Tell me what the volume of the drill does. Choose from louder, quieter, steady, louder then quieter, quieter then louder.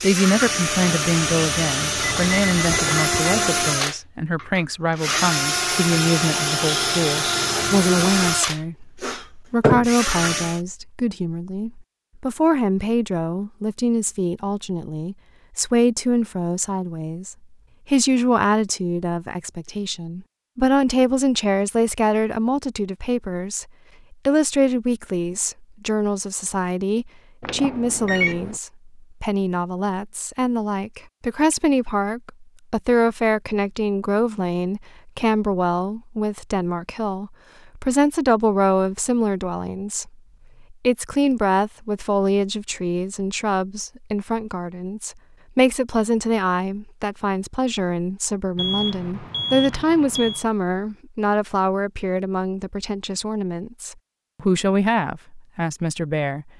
steady.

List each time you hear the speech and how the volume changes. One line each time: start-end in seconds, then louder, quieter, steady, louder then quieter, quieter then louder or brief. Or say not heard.
0.0-56.5 steady.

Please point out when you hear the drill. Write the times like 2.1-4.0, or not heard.
0.0-10.6.